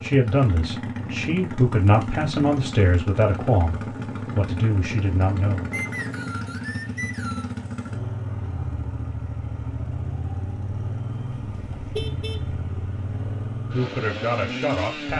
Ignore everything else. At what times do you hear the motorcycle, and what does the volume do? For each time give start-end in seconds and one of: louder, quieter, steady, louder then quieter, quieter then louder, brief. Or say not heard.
0.0-15.1 steady.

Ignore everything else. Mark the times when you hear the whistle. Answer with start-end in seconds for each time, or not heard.
5.7-7.5.